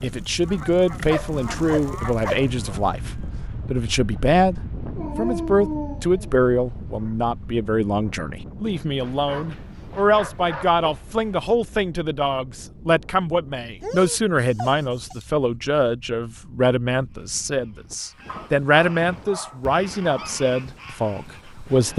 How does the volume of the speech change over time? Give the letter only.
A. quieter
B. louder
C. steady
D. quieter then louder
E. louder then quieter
C.